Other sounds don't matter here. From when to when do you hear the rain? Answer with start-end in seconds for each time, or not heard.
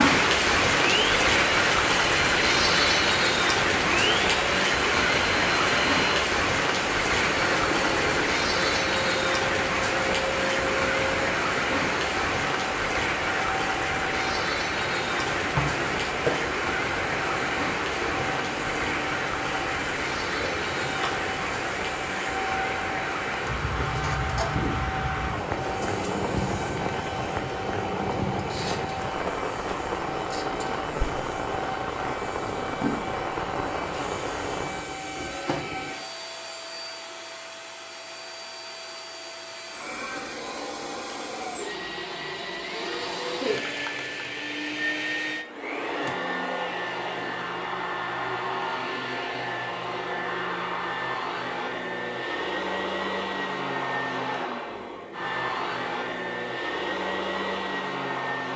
0.0-34.9.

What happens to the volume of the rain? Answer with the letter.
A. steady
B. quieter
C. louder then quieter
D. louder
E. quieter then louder
B.